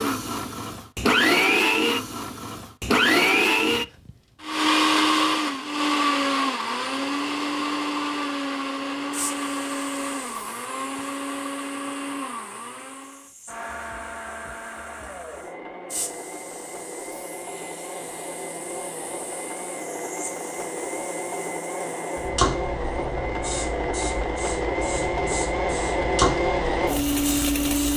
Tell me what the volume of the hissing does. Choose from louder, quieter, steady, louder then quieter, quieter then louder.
louder.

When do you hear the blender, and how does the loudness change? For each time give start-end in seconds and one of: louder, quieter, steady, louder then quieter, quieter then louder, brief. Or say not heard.
0.0-27.9 quieter then louder.